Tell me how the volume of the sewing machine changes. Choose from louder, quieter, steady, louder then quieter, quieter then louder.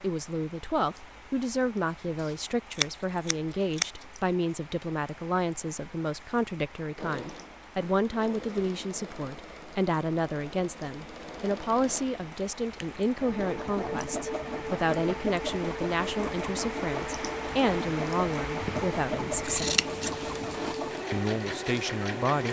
louder.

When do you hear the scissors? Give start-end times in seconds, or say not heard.
2.0-4.0, 18.6-20.8.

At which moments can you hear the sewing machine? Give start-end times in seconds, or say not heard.
6.8-22.4.